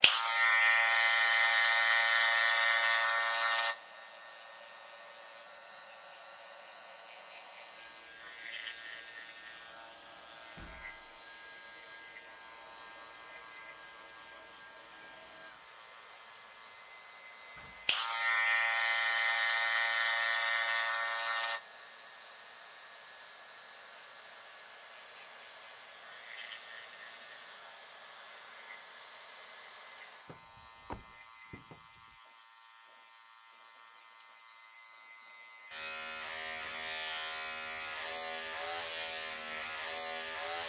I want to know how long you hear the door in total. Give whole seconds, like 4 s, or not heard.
3 s.